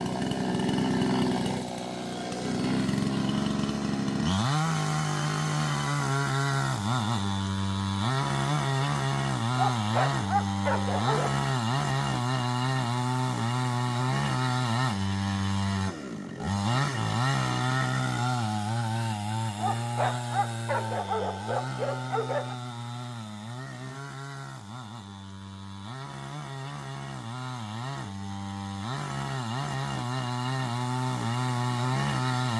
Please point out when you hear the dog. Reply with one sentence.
The dog can be heard from 9.6 to 11.4 s and from 19.6 to 22.6 s.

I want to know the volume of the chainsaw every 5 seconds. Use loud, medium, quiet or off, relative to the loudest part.
loud, loud, loud, loud, medium, medium, loud.